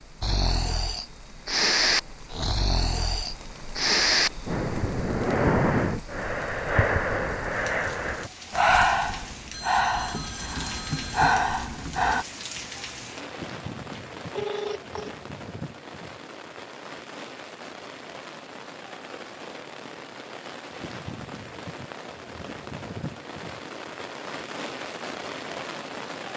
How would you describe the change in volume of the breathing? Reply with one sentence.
The loudness of the breathing stays about the same.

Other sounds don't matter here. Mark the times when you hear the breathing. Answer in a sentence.
You can hear the breathing from 0.2 to 12.2 s.